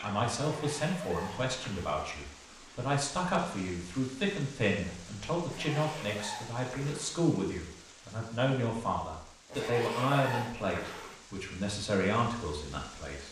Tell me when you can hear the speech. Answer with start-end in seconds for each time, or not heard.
0.0-13.2.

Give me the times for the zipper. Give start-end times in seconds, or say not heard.
0.3-2.0, 5.5-7.2, 9.4-11.2.